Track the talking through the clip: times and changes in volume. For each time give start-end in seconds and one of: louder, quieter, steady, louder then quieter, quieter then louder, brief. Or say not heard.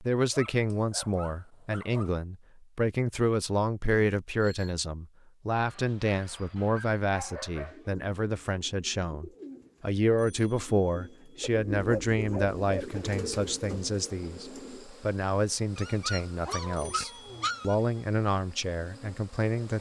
0.0-19.7 steady.